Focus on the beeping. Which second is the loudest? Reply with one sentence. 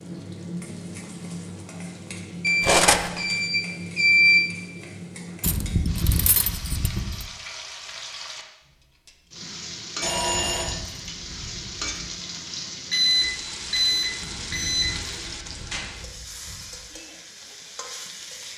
The loudest moment of the beeping is at 4 seconds.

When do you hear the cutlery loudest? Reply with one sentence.
The loudest moment of the cutlery is at 3 seconds.